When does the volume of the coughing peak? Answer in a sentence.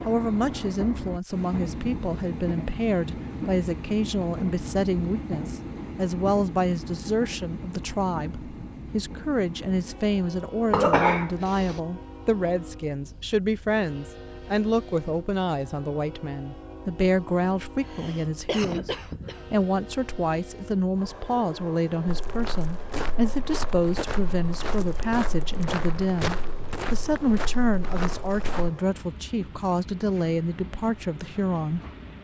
The volume of the coughing peaks at 11 seconds.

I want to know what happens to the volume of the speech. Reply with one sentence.
The loudness of the speech stays about the same.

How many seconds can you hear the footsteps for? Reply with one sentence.
The footsteps can be heard for 7 seconds in total.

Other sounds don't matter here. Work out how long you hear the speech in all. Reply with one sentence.
The speech can be heard for 32 seconds in total.